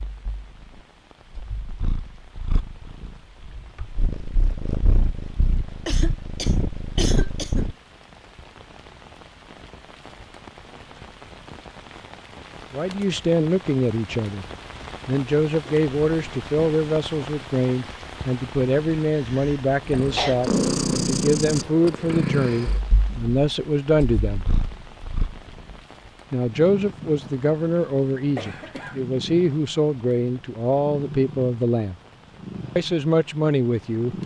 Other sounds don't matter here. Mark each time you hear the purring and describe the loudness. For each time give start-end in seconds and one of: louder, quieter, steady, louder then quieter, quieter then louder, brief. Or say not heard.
0.1-7.8 louder
19.9-34.2 quieter.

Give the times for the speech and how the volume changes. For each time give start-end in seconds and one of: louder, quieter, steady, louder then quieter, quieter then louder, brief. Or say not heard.
12.7-14.4 brief
15.1-24.4 steady
26.3-31.9 steady
32.8-34.1 brief.